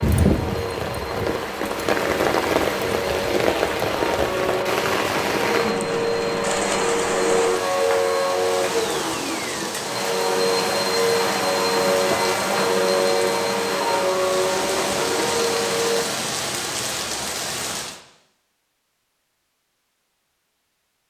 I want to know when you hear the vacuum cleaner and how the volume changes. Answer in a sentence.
The vacuum cleaner can be heard from 0.0 to 16.1 s, getting louder.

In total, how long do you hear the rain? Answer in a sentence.
The rain can be heard for 18 seconds in total.